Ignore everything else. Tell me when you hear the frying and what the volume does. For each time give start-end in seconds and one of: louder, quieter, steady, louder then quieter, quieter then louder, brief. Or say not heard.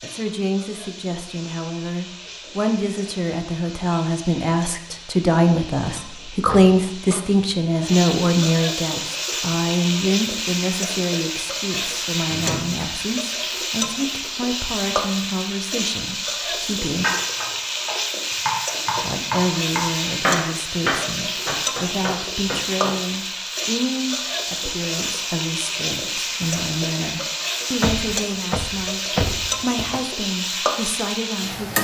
0.0-31.7 louder.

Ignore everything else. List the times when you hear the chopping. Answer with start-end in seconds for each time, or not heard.
17.0-22.9.